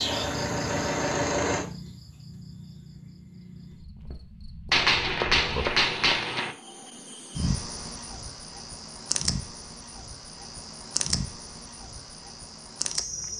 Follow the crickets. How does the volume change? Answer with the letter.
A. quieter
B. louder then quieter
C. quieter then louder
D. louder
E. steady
C.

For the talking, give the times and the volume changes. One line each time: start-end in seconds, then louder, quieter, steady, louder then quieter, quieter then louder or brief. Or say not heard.
not heard.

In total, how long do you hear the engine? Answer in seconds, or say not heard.
2 s.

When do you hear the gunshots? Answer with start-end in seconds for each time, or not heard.
4.7-6.5.